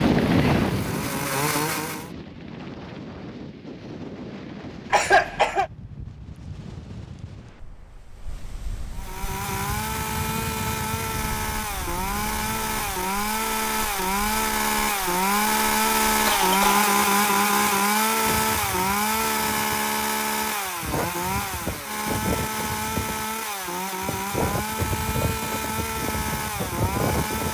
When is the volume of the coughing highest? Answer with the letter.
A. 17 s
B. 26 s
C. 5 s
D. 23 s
C.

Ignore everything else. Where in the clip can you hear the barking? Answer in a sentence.
You can't hear the barking here.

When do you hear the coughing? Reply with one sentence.
You can hear the coughing from 4.9 to 5.7 s and from 16.2 to 17.4 s.